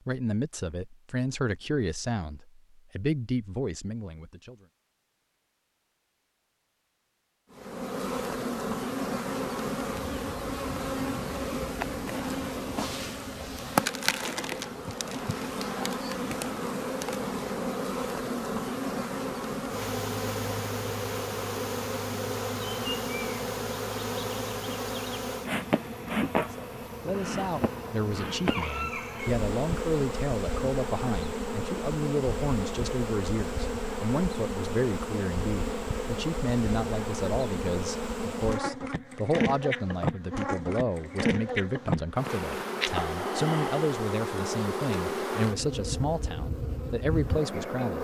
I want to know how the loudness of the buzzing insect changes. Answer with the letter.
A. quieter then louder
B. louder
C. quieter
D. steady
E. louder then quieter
D.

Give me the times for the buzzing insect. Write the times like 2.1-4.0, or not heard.
7.5-47.9.